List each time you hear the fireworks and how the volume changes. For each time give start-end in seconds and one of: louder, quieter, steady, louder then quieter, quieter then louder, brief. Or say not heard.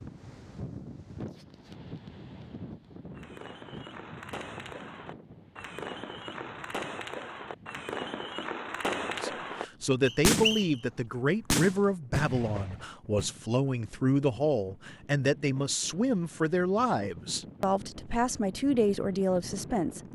3.1-10.7 louder
11.5-13.4 brief.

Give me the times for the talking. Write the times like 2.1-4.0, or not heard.
8.8-20.0.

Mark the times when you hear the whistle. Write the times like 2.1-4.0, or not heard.
10.1-10.8.